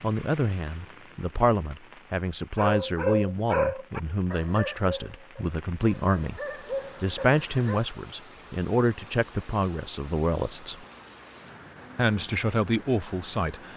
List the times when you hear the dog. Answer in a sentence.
The dog can be heard from 2.5 to 7.8 s.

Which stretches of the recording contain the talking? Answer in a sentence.
The talking can be heard from 0.0 to 6.4 s, from 7.0 to 10.8 s and from 11.9 to 13.7 s.